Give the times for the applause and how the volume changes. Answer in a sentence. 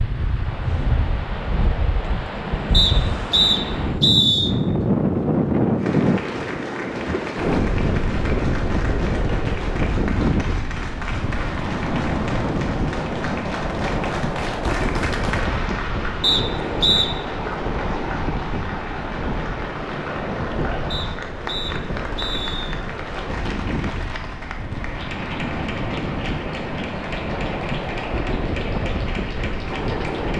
The applause can be heard from 5.8 to 30.3 s, at a steady volume.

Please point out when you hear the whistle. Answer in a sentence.
You can hear the whistle from 2.7 to 4.5 s, from 16.2 to 17.1 s and from 20.9 to 22.8 s.